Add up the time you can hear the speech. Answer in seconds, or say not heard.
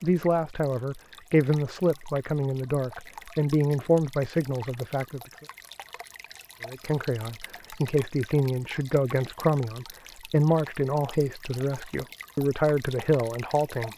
13 s.